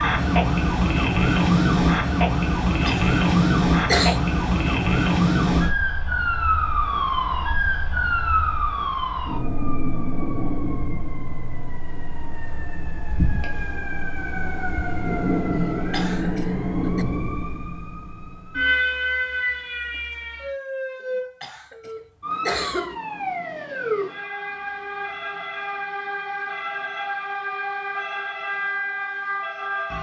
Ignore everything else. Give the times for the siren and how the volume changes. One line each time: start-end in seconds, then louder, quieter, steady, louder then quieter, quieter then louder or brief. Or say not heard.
0.0-29.9 quieter.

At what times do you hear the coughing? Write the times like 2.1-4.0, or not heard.
2.9-4.2, 15.5-17.1, 21.4-23.0.